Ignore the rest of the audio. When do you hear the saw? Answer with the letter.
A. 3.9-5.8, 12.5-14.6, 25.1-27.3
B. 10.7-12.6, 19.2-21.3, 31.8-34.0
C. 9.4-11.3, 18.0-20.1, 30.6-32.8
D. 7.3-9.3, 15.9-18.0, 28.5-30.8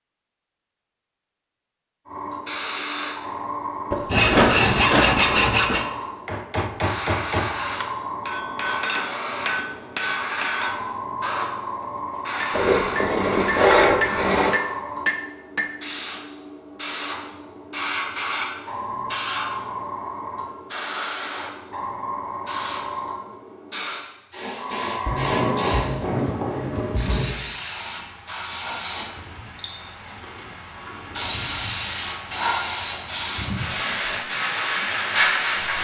A.